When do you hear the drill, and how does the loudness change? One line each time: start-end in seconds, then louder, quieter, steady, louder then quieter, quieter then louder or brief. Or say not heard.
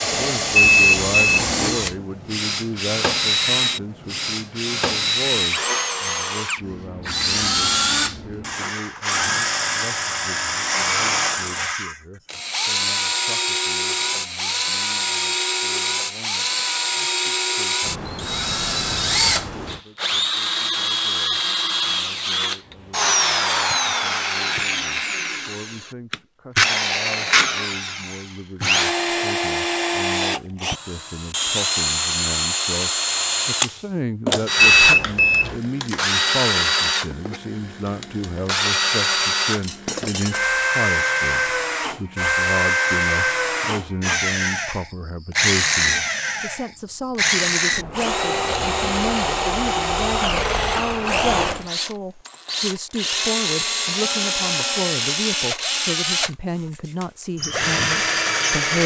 0.0-58.8 steady.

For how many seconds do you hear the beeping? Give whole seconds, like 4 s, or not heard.
2 s.